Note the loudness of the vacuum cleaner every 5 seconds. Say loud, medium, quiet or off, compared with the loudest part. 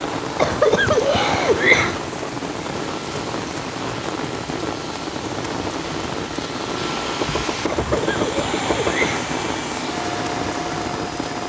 medium, loud, loud.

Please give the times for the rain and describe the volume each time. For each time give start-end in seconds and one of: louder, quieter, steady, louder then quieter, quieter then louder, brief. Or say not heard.
0.0-11.4 steady.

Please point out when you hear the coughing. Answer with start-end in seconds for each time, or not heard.
0.2-2.0, 7.5-9.3.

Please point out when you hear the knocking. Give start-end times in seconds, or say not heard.
7.2-9.1.